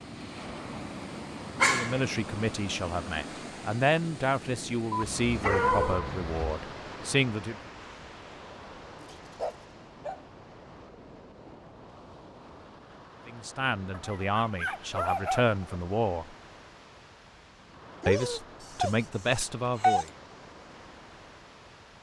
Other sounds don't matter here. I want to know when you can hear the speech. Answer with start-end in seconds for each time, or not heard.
1.6-7.5, 13.2-16.4, 18.1-20.1.